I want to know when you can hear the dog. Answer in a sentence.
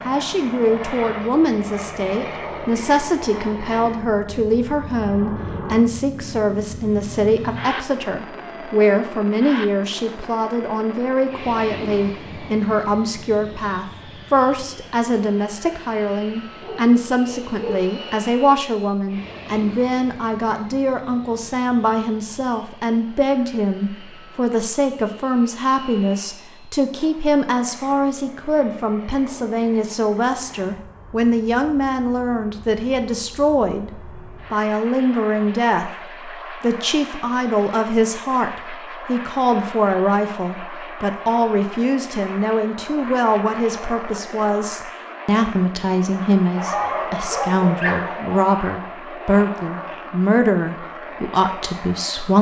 You can hear the dog from 16.6 to 17.9 s and from 46.5 to 48.4 s.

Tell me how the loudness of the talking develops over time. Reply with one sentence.
The loudness of the talking stays about the same.